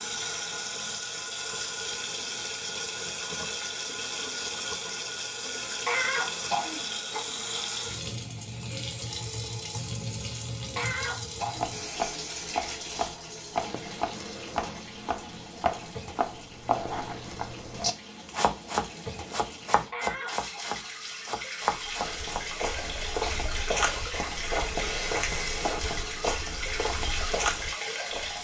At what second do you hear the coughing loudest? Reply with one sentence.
The volume of the coughing peaks at 6 seconds.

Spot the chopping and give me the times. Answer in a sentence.
You can hear the chopping from 11.4 to 22.5 s.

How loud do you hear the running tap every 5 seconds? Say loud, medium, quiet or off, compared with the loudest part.
loud, loud, loud, medium, loud, loud.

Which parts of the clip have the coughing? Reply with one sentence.
The coughing can be heard from 5.8 to 7.3 s, from 10.8 to 11.8 s and from 19.9 to 20.6 s.